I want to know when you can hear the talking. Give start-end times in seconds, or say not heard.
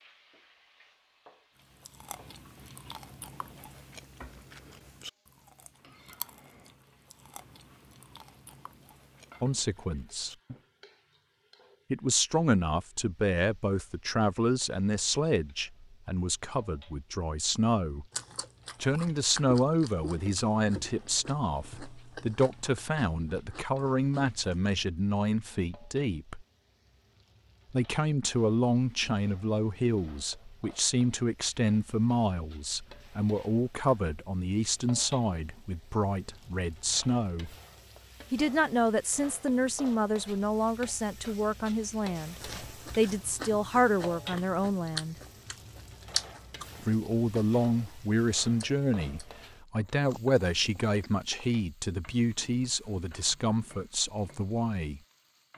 9.4-10.3, 11.9-18.1, 18.8-26.4, 27.7-37.5, 38.3-45.1, 46.9-55.0.